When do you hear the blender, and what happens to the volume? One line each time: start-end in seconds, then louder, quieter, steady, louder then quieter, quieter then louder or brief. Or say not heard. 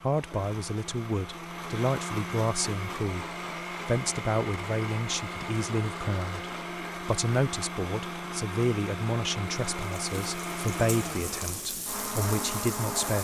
0.0-13.1 steady.